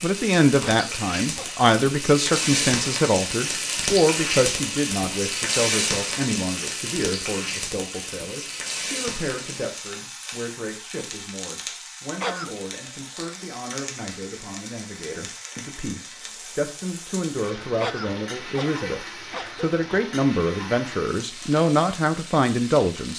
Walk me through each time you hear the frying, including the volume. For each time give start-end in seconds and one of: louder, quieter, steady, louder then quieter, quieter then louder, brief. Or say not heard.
0.0-23.1 quieter.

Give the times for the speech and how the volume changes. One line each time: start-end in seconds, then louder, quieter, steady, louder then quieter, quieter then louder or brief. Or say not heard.
0.0-23.1 quieter then louder.